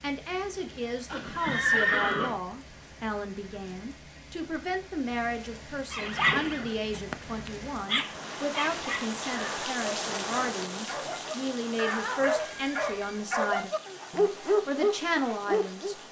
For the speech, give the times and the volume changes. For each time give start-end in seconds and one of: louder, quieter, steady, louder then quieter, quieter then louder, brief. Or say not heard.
0.0-16.0 steady.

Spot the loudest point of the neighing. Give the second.
2 s.